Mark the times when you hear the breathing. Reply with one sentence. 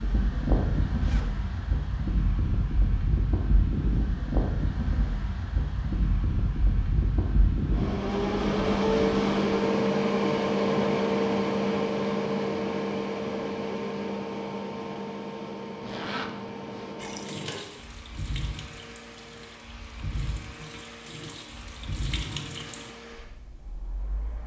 The breathing can't be heard in this clip.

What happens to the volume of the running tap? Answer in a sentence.
The volume of the running tap goes down, then up.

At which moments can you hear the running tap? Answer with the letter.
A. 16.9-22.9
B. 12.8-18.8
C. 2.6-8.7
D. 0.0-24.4
A.